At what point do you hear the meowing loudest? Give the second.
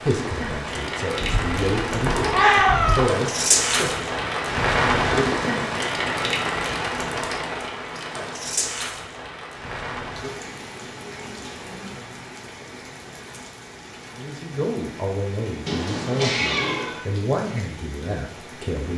3 s.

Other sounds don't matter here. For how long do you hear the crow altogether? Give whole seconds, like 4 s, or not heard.
not heard.